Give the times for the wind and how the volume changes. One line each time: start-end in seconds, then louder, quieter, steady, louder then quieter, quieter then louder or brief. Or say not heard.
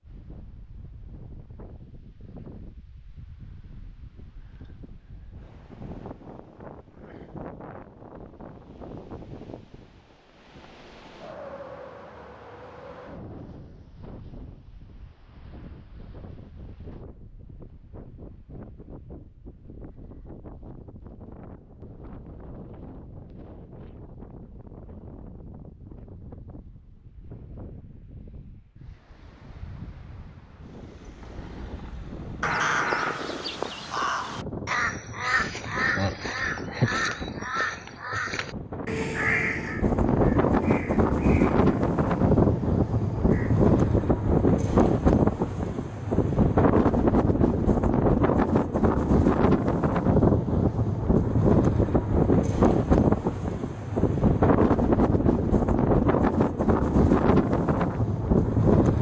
0.0-58.9 louder.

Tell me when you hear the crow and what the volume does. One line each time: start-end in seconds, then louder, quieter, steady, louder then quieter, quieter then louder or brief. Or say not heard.
32.4-43.8 quieter.